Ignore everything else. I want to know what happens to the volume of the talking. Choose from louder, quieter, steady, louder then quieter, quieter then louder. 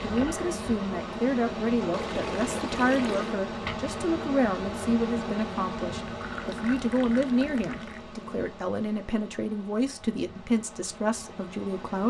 steady.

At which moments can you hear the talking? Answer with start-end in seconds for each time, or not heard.
0.0-12.0.